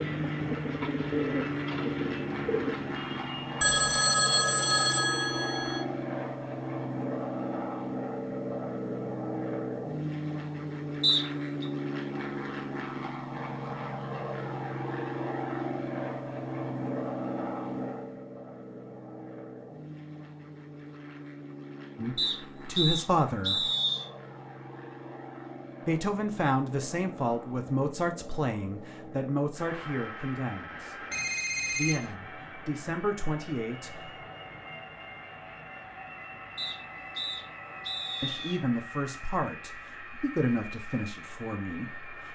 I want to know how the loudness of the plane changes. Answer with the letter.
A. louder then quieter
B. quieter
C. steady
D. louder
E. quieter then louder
B.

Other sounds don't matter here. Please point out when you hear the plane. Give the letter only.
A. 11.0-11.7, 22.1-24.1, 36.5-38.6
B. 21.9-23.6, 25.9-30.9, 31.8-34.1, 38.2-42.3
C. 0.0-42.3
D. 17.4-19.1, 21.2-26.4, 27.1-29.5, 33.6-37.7
C.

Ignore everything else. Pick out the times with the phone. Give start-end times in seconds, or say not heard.
3.6-5.8, 31.1-32.1.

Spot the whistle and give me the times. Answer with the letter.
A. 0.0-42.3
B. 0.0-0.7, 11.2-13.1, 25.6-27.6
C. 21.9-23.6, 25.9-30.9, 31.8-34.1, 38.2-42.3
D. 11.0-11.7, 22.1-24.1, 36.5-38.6
D.